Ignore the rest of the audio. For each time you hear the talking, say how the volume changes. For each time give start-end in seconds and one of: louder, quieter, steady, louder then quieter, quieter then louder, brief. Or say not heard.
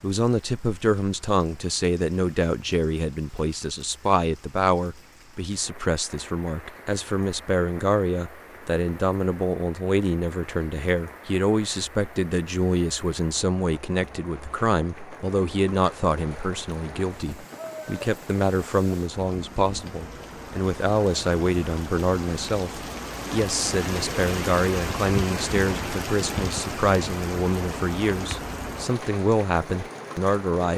0.0-30.7 steady.